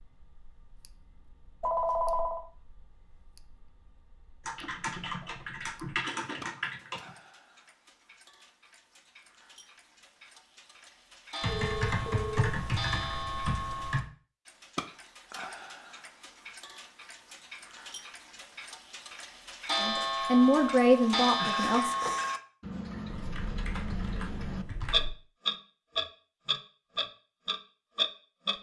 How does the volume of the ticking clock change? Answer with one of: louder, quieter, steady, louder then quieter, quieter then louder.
louder.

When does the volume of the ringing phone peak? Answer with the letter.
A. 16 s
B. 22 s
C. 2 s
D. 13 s
C.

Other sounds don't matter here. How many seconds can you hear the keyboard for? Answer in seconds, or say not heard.
7 s.